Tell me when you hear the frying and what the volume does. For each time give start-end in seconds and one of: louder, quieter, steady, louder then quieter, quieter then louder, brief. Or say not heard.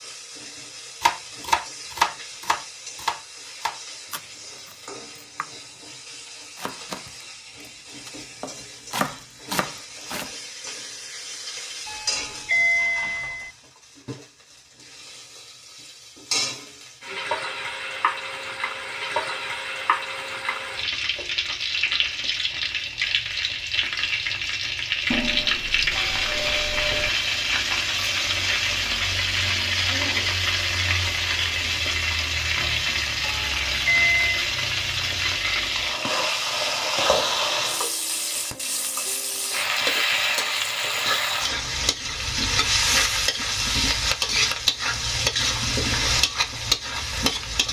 0.0-47.6 louder.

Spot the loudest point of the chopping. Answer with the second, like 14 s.
2 s.